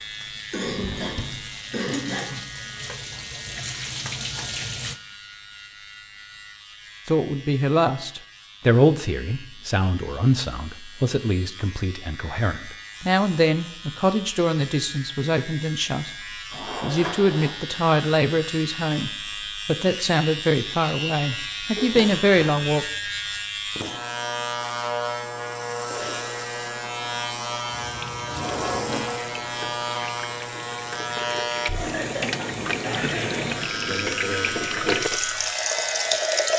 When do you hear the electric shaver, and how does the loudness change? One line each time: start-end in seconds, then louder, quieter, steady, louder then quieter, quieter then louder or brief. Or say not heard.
0.0-36.5 louder.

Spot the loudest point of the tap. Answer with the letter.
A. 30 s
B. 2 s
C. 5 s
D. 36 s
D.